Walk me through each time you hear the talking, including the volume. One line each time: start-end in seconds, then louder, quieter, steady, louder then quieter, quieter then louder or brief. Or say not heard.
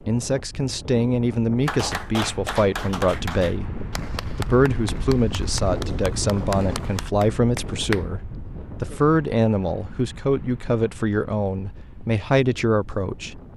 0.1-13.4 steady.